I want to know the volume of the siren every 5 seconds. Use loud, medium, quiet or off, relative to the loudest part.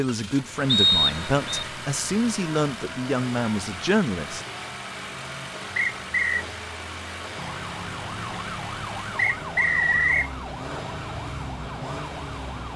off, loud, loud.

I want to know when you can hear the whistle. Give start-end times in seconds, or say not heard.
0.7-1.6, 5.8-6.5, 9.2-10.3.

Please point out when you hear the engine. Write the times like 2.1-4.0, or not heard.
0.0-12.7.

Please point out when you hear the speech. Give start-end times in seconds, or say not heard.
0.0-4.4.